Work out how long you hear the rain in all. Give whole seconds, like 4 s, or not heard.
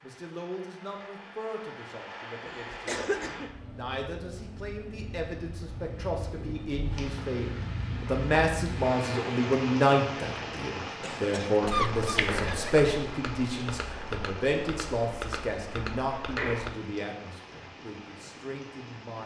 19 s.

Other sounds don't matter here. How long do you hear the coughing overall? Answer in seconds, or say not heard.
3 s.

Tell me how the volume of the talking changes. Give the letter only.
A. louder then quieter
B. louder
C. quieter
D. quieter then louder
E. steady
A.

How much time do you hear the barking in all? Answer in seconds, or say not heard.
not heard.